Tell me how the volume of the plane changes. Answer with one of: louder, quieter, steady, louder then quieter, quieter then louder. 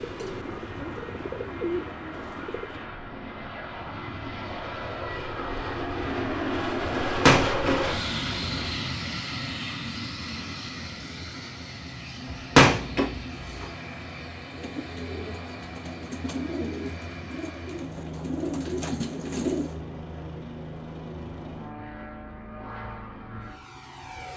louder then quieter.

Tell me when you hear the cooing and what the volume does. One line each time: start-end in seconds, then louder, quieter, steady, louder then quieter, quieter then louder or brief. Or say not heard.
0.0-2.9 brief
14.4-19.8 louder.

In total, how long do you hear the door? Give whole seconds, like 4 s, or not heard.
3 s.